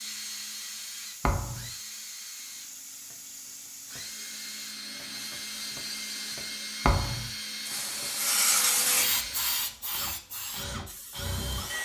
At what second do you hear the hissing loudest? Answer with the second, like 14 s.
9 s.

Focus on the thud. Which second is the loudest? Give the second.
7 s.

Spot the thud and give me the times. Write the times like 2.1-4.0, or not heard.
1.2-1.7, 6.8-7.3.